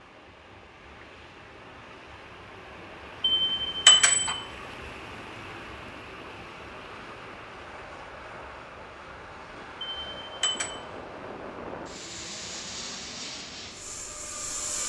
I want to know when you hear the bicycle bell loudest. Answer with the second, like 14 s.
4 s.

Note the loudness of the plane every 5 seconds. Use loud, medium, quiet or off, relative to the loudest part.
quiet, medium, loud.